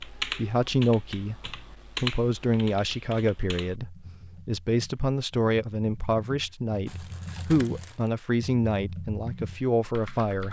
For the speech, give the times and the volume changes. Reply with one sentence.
The speech can be heard from 0.2 to 10.4 s, at a steady volume.